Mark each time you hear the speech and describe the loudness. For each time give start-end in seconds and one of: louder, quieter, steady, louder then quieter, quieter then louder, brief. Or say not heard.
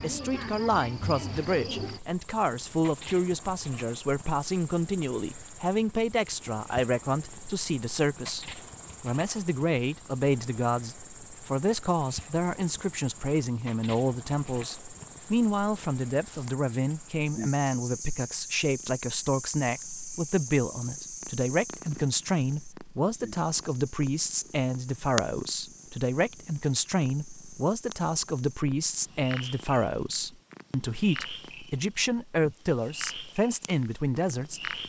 0.0-34.8 steady.